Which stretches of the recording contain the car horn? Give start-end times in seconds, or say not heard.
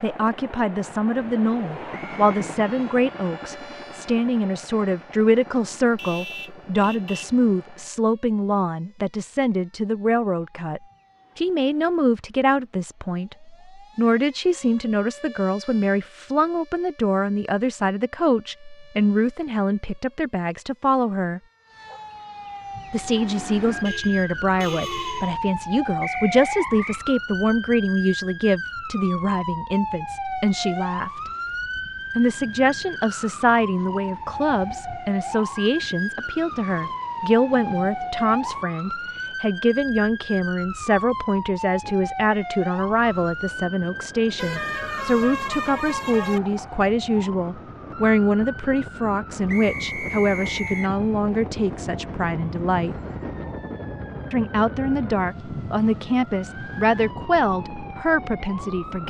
6.0-7.3, 23.9-25.4, 44.4-46.4.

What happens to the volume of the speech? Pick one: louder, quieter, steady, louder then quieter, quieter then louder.
steady.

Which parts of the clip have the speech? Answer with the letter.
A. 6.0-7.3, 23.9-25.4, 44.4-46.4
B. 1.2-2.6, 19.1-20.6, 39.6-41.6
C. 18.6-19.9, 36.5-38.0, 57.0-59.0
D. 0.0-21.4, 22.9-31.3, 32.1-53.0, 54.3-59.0
D.